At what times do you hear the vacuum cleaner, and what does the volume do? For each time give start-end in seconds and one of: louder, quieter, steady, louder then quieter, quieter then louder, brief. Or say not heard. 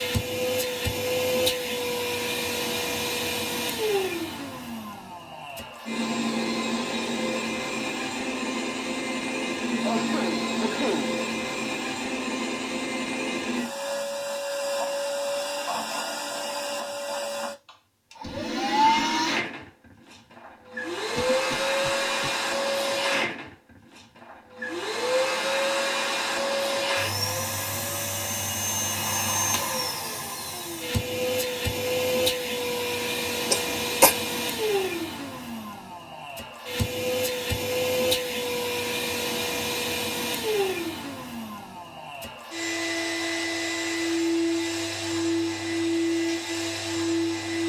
0.0-47.6 steady.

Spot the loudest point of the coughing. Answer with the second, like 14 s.
34 s.